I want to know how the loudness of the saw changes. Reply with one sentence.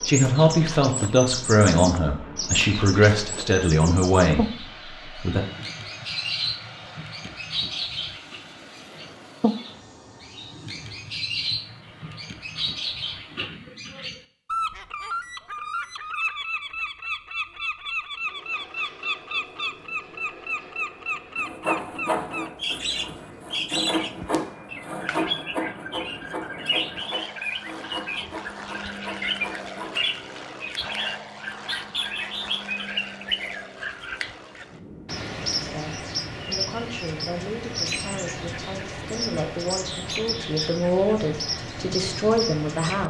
The loudness of the saw goes down.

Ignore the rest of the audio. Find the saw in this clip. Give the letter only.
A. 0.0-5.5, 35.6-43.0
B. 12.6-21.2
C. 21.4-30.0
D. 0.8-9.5
C.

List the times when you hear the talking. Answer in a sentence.
You can hear the talking from 0.0 to 5.5 s and from 35.6 to 43.0 s.